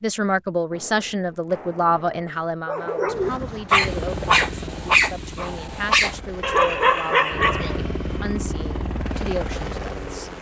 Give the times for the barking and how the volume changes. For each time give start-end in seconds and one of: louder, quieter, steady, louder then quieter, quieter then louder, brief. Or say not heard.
2.6-7.8 steady.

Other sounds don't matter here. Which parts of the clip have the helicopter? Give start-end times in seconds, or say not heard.
3.0-10.3.